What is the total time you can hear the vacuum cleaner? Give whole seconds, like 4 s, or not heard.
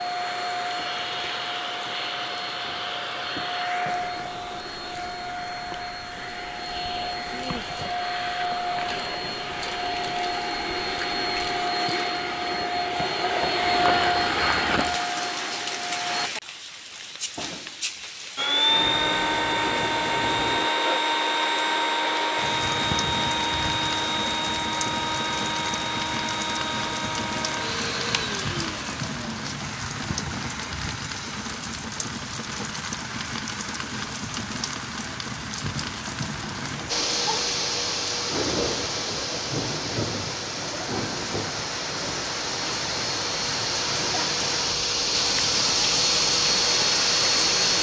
38 s.